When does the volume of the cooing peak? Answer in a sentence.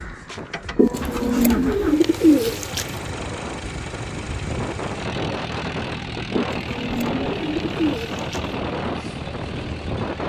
The volume of the cooing peaks at 2 seconds.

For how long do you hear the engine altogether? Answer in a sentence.
The engine can be heard for 10 seconds in total.